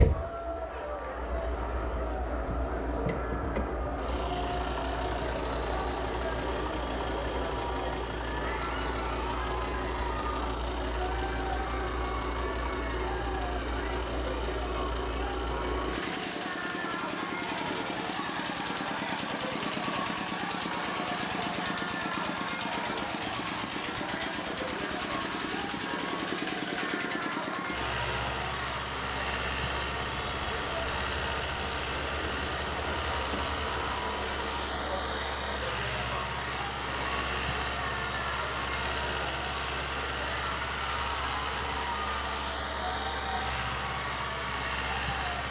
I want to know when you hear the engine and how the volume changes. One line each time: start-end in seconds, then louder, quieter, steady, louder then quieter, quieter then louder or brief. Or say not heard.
0.0-45.4 steady.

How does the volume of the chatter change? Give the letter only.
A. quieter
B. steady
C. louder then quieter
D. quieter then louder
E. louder
B.